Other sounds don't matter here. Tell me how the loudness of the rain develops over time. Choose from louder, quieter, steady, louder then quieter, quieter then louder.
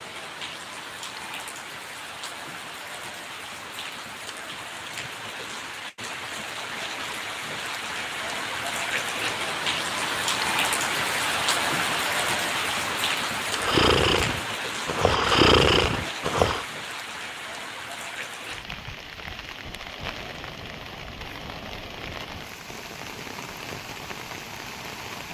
louder then quieter.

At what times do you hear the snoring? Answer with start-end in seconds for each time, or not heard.
13.5-16.6.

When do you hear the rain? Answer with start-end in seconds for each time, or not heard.
0.0-25.2.